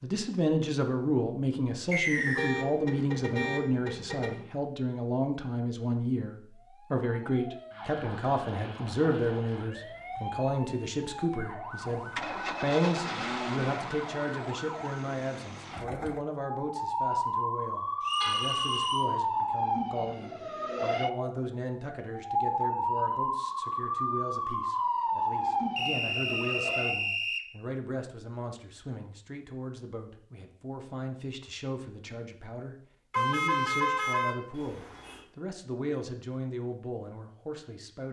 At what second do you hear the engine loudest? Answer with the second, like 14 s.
13 s.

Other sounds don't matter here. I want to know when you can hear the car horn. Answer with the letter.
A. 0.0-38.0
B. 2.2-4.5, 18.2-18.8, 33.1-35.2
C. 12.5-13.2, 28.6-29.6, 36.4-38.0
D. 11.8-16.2
B.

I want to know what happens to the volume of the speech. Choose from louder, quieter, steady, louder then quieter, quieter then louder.
quieter.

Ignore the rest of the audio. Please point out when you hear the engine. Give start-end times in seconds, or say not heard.
11.8-16.2.